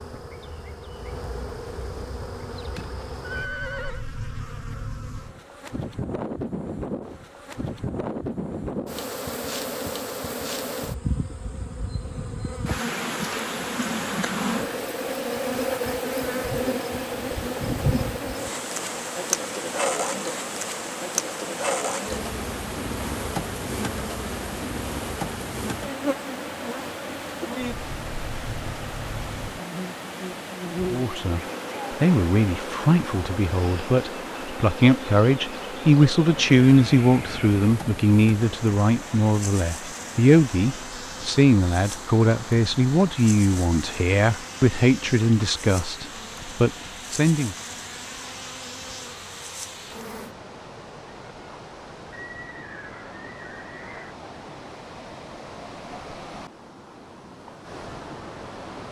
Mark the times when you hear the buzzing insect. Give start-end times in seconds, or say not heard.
0.0-50.4.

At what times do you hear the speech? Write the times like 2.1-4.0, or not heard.
30.9-47.5.